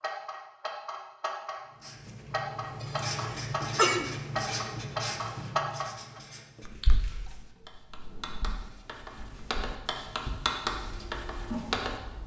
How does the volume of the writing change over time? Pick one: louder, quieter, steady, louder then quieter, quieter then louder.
quieter then louder.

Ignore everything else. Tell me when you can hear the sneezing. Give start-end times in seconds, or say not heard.
2.8-4.0.